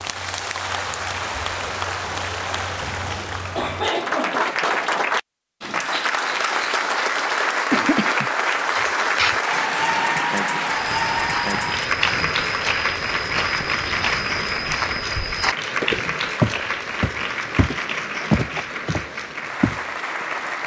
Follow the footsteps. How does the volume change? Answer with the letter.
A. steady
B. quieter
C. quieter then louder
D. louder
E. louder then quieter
D.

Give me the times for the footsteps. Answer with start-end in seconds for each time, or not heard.
10.7-19.8.